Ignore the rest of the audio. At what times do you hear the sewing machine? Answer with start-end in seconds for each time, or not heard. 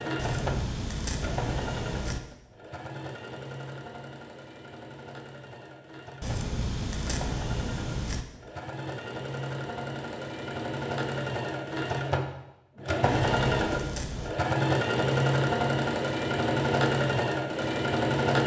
0.0-18.4.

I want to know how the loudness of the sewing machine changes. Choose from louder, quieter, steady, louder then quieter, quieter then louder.
quieter then louder.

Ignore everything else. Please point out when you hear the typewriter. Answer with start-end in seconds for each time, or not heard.
not heard.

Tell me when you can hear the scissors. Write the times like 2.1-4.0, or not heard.
0.1-2.2, 6.2-8.2, 13.1-14.3.